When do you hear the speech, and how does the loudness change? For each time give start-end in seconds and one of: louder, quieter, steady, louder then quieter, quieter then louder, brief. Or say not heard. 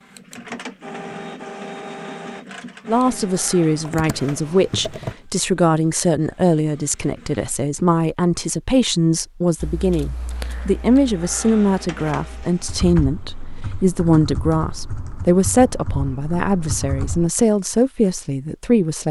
2.9-19.0 steady.